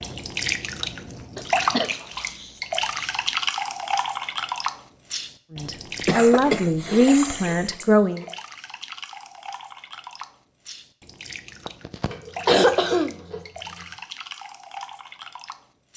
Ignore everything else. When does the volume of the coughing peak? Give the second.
13 s.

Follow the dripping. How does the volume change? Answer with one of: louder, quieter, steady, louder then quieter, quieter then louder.
quieter.